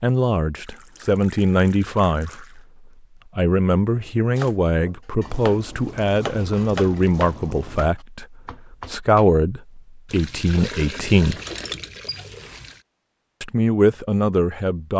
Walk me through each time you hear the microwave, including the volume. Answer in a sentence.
The microwave can't be heard in this clip.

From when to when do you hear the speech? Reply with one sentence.
You can hear the speech from 0.0 to 2.6 s, from 3.4 to 11.4 s and from 13.4 to 14.9 s.